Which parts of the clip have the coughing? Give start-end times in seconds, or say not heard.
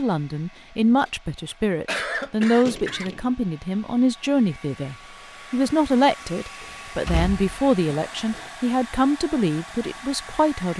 1.1-3.1, 7.8-8.3.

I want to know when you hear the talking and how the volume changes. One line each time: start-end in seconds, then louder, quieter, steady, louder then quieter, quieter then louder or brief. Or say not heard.
0.0-10.7 steady.